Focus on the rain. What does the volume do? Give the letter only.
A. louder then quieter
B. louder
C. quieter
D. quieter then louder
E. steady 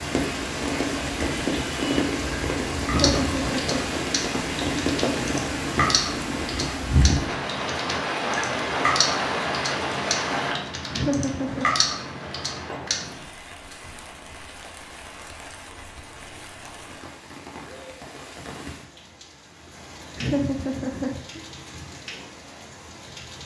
C.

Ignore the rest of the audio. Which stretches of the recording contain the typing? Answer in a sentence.
The typing can be heard from 2.9 to 13.2 s.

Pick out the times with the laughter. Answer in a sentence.
The laughter can be heard from 2.8 to 4.0 s, from 10.9 to 11.7 s and from 20.1 to 21.4 s.